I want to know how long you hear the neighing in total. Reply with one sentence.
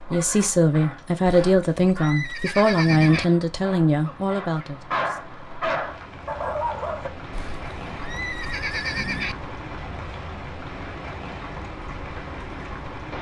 The neighing can be heard for 4 seconds in total.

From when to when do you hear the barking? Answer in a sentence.
You can hear the barking from 0.0 to 7.1 s.